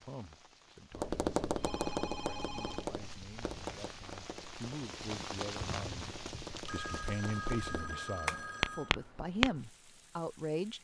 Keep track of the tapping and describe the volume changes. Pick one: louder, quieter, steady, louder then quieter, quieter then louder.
quieter then louder.